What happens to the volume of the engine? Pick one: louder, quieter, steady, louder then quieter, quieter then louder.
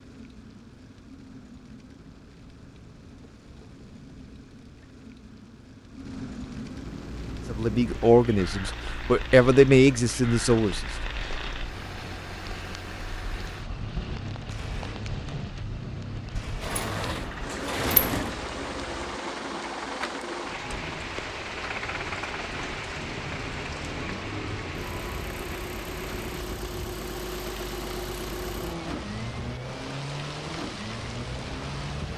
louder.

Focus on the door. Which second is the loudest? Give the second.
18 s.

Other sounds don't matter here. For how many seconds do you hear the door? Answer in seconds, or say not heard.
2 s.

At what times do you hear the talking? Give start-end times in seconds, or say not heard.
7.5-10.8.